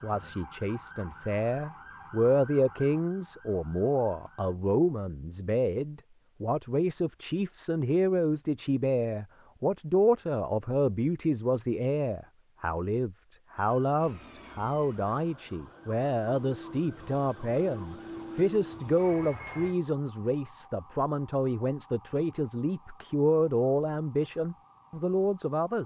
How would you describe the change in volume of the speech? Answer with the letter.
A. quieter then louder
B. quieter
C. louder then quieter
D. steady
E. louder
D.